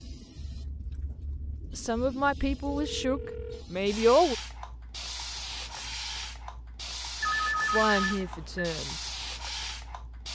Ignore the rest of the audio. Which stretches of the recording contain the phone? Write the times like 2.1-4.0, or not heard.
2.6-3.6, 7.2-8.7.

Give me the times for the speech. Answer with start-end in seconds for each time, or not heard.
1.8-4.3, 7.7-9.1.